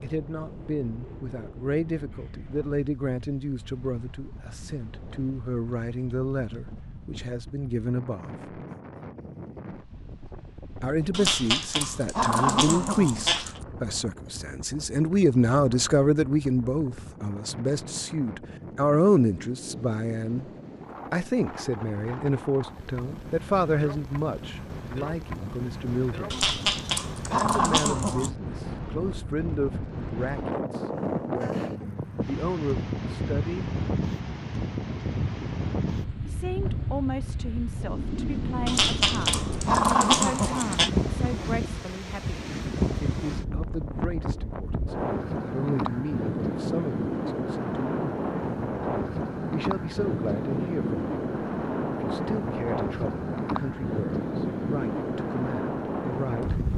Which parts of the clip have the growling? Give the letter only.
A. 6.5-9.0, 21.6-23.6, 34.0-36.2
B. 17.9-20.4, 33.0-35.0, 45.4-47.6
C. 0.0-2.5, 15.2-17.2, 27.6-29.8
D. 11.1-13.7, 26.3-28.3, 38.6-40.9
D.